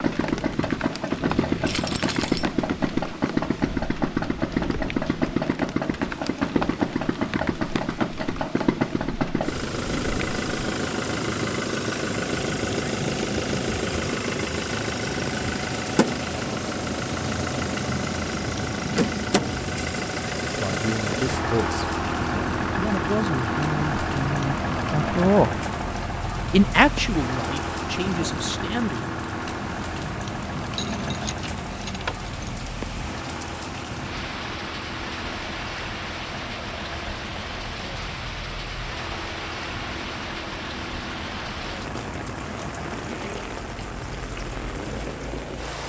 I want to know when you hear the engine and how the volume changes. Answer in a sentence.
The engine can be heard from 0.0 to 45.8 s, getting quieter.